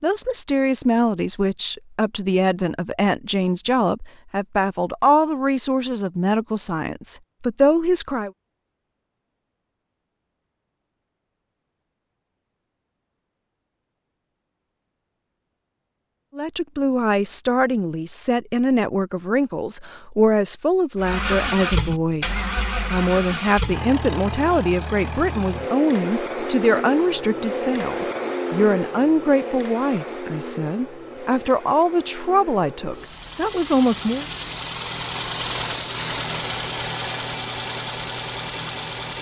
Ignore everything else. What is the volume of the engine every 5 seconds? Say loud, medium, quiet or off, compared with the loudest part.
off, off, off, off, loud, loud, medium, loud.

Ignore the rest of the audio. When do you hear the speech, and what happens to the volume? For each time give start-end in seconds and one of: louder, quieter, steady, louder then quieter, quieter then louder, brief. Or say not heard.
0.0-8.3 steady
16.4-34.2 steady.